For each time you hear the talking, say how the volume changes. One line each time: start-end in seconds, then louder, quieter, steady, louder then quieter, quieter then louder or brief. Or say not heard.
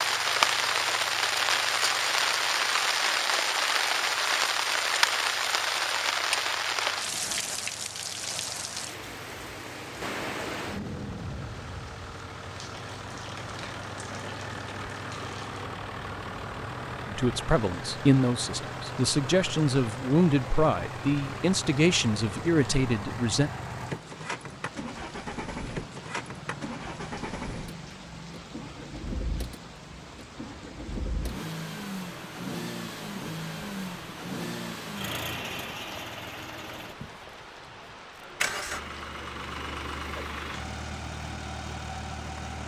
17.1-23.5 steady.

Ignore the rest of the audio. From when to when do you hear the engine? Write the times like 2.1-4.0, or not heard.
0.0-42.6.